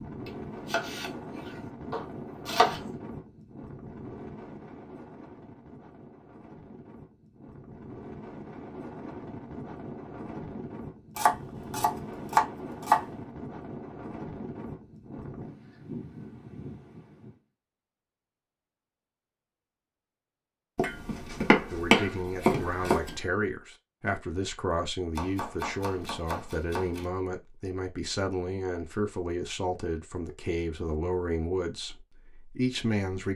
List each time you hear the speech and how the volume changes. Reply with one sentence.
The speech can be heard from 21.7 to 33.3 s, at a steady volume.